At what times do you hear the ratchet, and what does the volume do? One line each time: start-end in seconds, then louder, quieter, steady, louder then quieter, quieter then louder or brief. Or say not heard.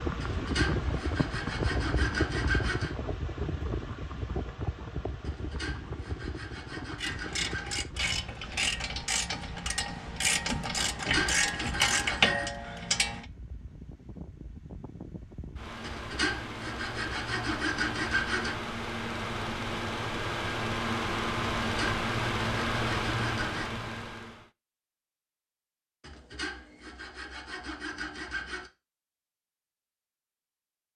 7.0-13.2 louder.